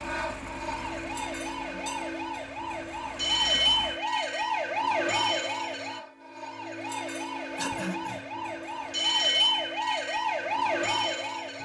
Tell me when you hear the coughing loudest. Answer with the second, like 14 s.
8 s.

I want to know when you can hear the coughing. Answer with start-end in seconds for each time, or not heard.
1.4-2.0, 7.5-8.2.